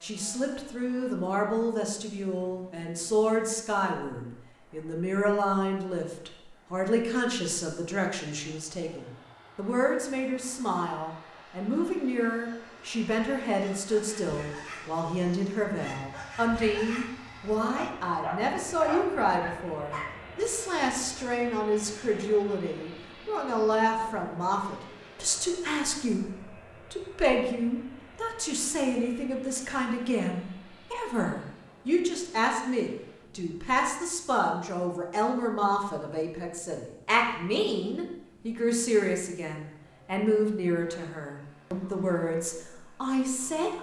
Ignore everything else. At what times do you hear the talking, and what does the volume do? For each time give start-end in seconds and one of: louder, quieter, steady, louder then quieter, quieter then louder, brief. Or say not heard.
0.0-43.7 steady.